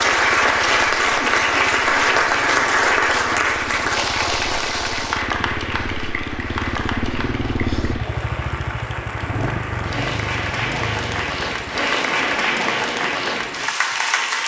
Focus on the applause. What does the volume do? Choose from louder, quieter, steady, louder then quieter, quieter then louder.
quieter then louder.